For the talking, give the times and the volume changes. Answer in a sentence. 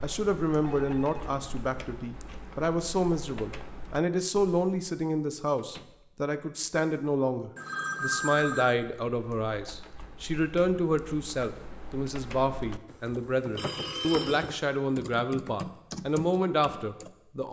You can hear the talking from 0.0 to 17.4 s, at a steady volume.